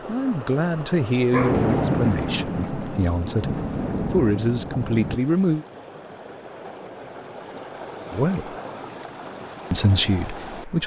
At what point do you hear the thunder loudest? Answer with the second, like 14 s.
2 s.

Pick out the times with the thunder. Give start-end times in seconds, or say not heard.
1.3-5.2.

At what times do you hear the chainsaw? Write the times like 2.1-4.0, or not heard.
not heard.